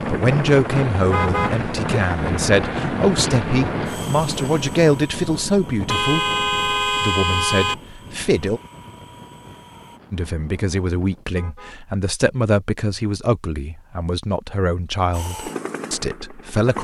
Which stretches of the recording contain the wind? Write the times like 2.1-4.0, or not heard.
0.0-11.2.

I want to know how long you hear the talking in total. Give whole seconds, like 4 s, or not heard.
15 s.